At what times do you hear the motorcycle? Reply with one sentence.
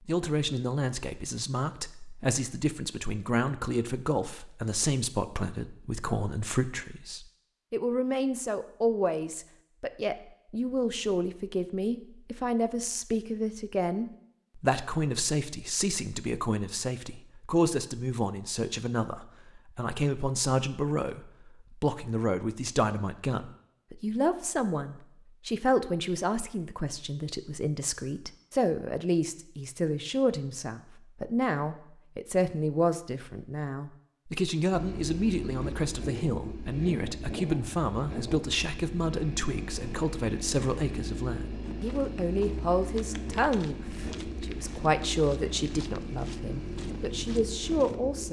The motorcycle can be heard from 34.7 to 48.2 s.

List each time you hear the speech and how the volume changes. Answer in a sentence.
You can hear the speech from 0.1 to 48.2 s, at a steady volume.